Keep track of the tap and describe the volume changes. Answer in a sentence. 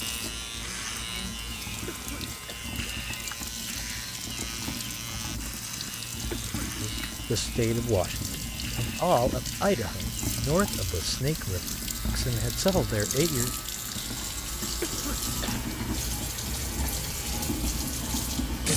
The volume of the tap goes up.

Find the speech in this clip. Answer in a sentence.
The speech can be heard from 6.8 to 13.6 s.